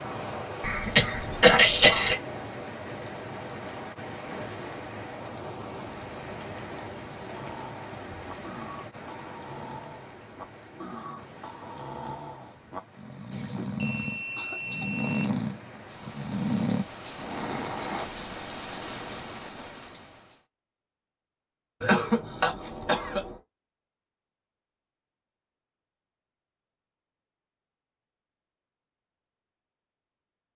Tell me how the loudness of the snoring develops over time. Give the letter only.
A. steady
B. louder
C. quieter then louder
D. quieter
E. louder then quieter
B.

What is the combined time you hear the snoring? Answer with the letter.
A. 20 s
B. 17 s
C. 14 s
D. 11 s
D.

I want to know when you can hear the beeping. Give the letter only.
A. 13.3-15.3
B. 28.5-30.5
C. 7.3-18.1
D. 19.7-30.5
A.